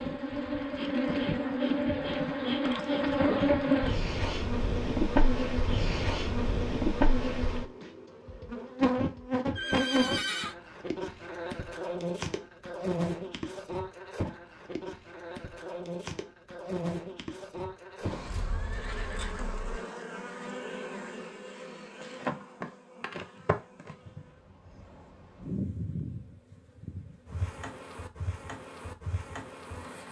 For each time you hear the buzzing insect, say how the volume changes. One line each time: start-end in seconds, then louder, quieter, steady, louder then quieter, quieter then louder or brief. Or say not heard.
0.0-30.0 quieter.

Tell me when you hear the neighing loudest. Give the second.
10 s.